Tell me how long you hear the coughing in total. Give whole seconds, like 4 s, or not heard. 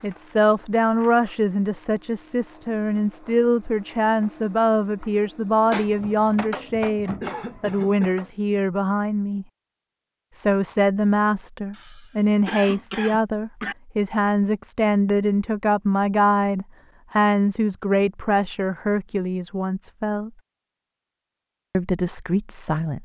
3 s.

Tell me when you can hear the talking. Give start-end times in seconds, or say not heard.
0.0-9.4, 10.3-20.3, 21.7-22.9.